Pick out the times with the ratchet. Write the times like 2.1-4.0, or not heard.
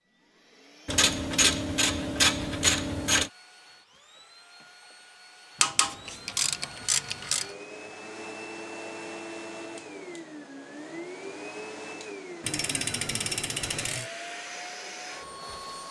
0.8-3.3, 5.6-7.5, 12.4-14.1.